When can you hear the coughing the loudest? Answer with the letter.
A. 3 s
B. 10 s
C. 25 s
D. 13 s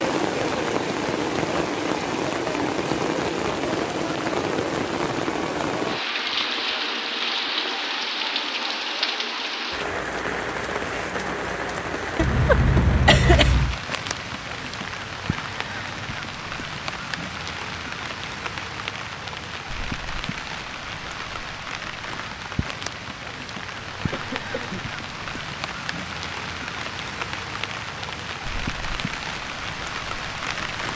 D.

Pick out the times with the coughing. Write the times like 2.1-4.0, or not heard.
12.2-13.8, 23.9-25.0.